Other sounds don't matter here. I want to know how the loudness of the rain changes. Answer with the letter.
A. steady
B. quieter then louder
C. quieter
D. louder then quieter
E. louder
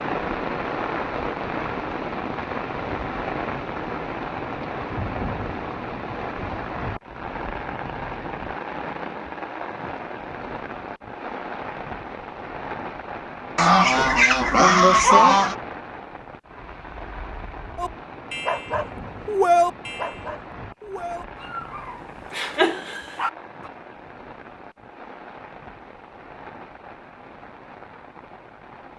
C.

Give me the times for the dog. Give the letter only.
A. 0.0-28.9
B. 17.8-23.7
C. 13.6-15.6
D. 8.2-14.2
B.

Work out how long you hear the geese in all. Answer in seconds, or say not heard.
2 s.